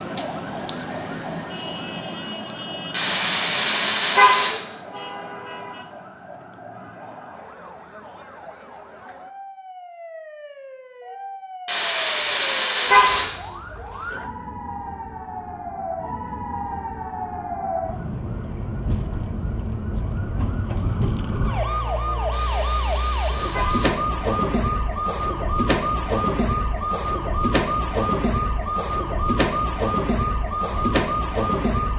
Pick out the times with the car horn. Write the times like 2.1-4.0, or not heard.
2.9-4.6, 11.7-13.2, 22.3-23.9.